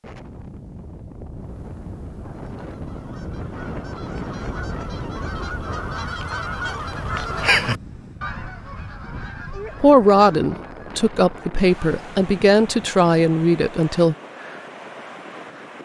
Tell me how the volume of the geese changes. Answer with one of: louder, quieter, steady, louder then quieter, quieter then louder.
louder then quieter.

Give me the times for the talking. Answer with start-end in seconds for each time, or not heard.
9.8-14.2.